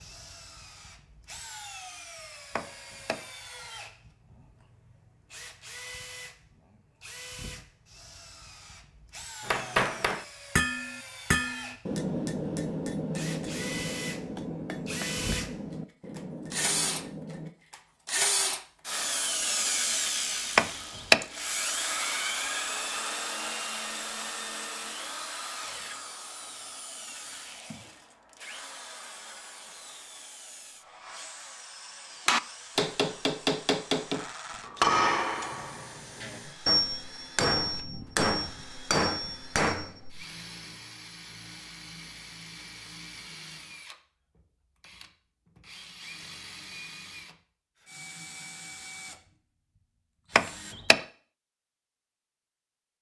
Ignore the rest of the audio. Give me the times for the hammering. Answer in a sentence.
You can hear the hammering from 9.4 to 17.5 s and from 32.2 to 40.0 s.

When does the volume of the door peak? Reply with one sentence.
The loudest moment of the door is at 21 seconds.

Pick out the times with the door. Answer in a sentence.
The door can be heard from 2.5 to 3.2 s, from 20.6 to 21.2 s and from 50.4 to 51.0 s.